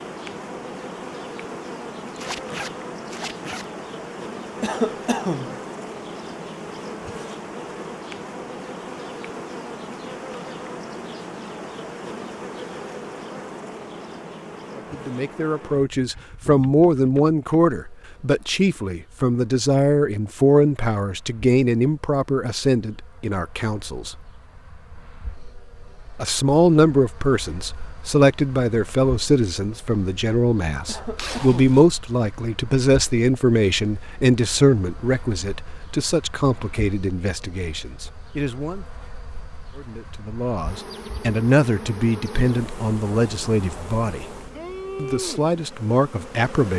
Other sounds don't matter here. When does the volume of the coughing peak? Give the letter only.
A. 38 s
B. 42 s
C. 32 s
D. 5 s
D.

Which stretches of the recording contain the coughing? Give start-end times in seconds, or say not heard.
4.6-5.6, 30.9-31.6.